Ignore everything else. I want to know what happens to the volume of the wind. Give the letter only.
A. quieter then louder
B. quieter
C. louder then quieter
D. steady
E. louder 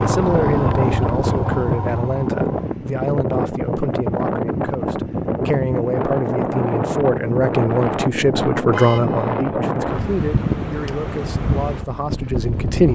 D.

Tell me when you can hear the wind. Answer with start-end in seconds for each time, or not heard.
0.0-12.9.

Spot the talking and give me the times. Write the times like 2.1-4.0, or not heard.
0.0-12.9.